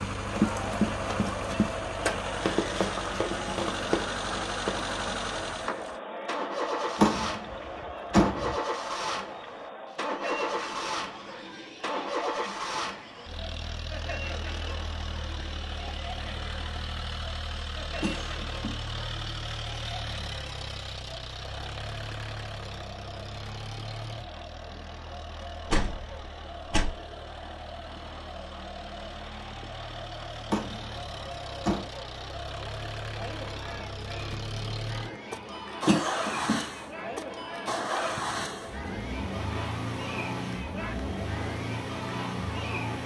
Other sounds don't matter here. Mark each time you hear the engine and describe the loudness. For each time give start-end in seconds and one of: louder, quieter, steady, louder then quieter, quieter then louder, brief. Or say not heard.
0.0-43.0 quieter then louder.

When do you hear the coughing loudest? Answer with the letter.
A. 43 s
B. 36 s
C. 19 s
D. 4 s
B.